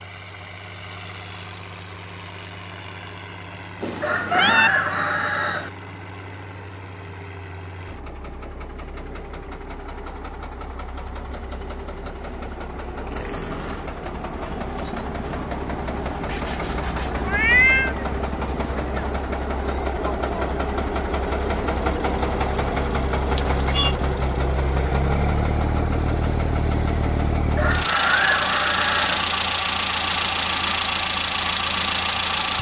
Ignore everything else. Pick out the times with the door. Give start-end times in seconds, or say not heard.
not heard.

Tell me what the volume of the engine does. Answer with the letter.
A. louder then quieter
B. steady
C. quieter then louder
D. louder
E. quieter
D.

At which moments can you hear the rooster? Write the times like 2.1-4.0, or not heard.
4.0-5.7, 27.6-29.2.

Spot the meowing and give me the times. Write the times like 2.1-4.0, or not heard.
3.8-4.7, 16.2-17.9, 23.4-23.9.